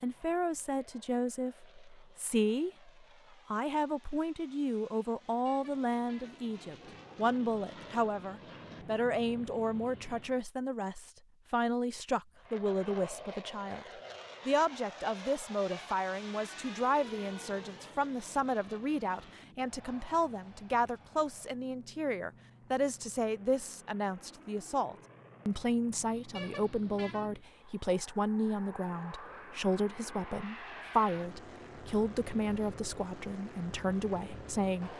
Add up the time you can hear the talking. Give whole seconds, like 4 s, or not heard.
34 s.